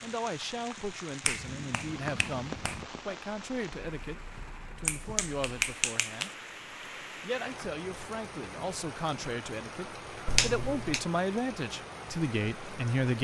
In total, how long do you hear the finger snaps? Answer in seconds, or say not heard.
4 s.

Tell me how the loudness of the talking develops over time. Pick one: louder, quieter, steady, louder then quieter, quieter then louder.
louder.